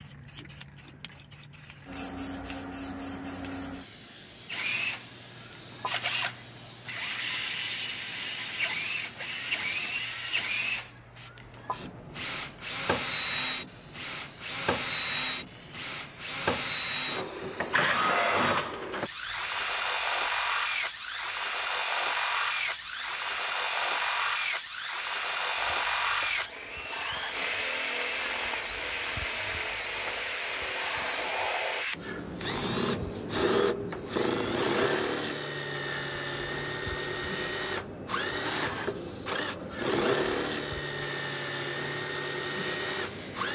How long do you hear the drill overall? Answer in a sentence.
You can hear the drill for 39 seconds altogether.